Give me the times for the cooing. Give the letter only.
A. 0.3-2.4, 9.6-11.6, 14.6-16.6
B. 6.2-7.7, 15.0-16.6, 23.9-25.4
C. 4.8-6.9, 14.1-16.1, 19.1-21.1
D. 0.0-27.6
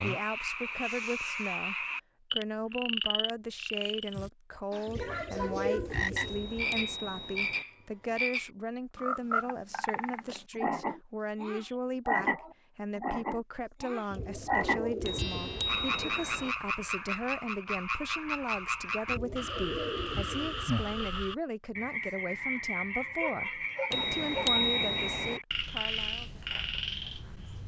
C.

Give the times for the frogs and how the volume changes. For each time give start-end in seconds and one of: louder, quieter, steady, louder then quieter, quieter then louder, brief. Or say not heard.
0.0-27.6 steady.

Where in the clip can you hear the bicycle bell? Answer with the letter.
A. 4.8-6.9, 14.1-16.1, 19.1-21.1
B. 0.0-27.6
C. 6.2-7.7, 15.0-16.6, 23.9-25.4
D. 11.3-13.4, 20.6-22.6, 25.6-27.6
C.